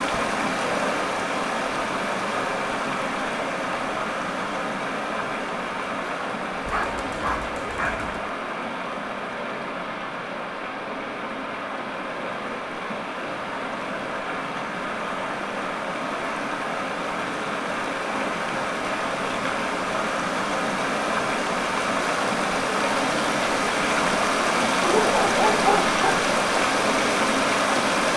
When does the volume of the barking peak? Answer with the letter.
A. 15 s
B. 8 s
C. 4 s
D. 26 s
D.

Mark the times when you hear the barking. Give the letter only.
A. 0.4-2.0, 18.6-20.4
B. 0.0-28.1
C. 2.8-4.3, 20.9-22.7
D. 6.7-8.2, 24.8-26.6
D.